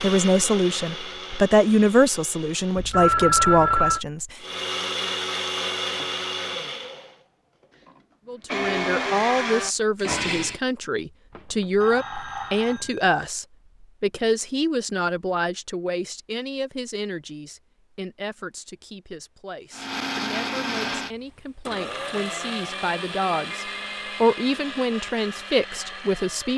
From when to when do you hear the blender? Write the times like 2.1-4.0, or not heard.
0.0-3.0, 4.4-10.6, 19.7-26.5.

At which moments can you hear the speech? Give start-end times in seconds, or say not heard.
0.0-4.2, 8.2-26.5.